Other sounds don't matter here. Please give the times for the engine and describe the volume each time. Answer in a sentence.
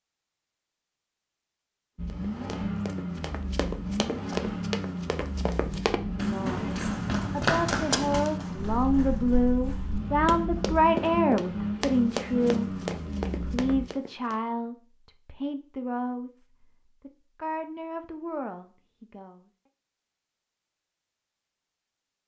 The engine can be heard from 1.9 to 13.8 s, at a steady volume.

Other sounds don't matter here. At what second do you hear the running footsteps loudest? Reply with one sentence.
The volume of the running footsteps peaks at 8 seconds.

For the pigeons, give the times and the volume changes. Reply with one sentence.
You can't hear the pigeons here.